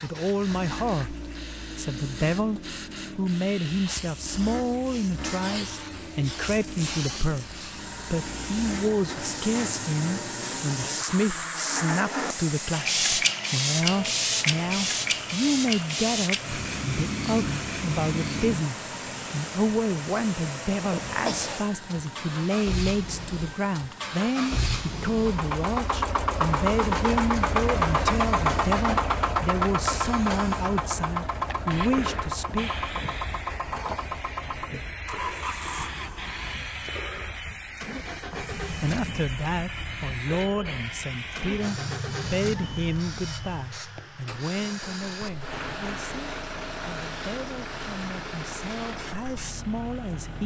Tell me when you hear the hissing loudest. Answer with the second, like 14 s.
13 s.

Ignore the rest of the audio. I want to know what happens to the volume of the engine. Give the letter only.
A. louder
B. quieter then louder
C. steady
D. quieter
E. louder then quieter
E.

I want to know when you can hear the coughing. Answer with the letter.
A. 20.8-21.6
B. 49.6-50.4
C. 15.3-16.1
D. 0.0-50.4
A.